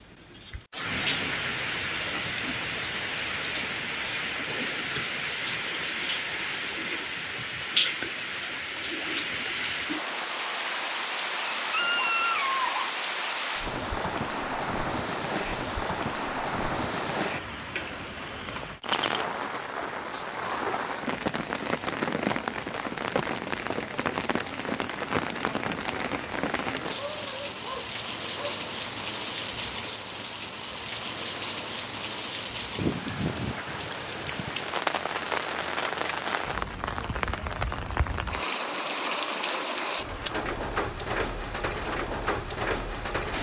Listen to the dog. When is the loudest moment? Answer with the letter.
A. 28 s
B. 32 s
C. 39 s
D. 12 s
D.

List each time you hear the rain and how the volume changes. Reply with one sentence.
You can hear the rain from 0.0 to 43.3 s, at a steady volume.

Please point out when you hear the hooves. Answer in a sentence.
You can't hear the hooves here.